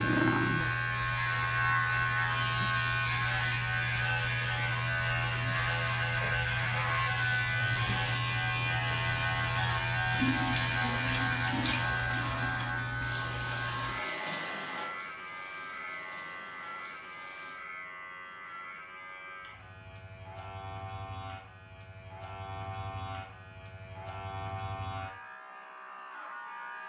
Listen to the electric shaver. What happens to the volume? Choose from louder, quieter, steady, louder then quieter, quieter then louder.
quieter.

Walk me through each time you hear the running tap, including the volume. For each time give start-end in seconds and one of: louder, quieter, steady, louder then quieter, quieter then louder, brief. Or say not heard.
10.1-17.6 quieter.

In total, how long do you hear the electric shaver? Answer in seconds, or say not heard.
27 s.